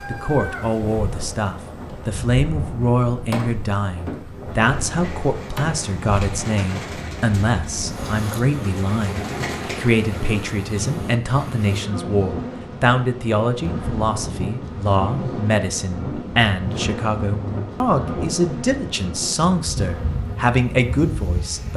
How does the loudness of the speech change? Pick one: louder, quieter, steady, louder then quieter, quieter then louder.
steady.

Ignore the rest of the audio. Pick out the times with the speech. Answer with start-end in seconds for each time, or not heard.
0.1-21.7.